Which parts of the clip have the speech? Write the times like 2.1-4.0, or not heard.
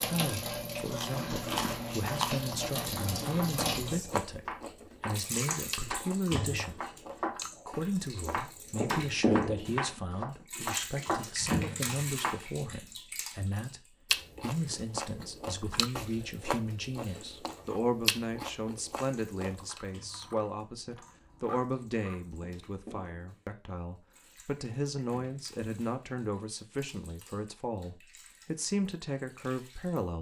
0.0-6.8, 7.7-30.1.